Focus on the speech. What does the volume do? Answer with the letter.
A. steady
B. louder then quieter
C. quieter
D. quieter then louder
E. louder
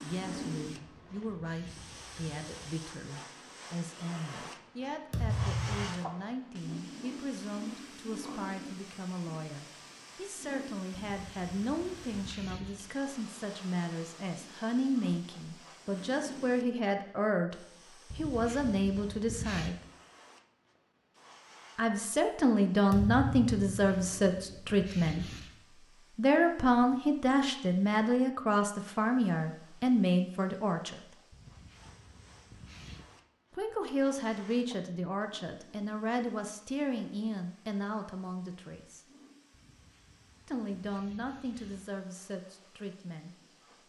B.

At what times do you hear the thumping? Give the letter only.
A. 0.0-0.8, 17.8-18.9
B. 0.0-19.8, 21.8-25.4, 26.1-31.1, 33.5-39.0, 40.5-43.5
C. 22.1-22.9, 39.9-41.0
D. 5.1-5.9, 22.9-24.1
D.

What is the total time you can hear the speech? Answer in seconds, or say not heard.
37 s.